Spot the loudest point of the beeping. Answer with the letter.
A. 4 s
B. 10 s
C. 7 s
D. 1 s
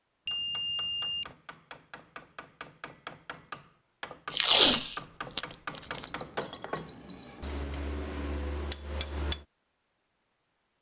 D.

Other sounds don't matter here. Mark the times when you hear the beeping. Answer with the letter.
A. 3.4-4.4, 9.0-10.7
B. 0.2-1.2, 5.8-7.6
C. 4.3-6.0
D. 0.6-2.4
B.